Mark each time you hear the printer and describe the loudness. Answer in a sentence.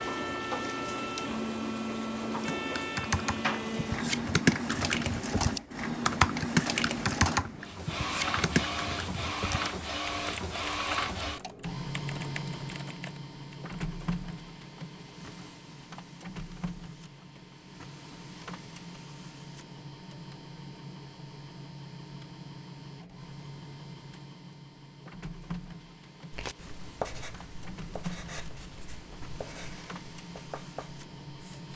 You can hear the printer from 0.0 to 31.7 s, getting quieter.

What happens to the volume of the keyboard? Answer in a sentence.
The volume of the keyboard goes down.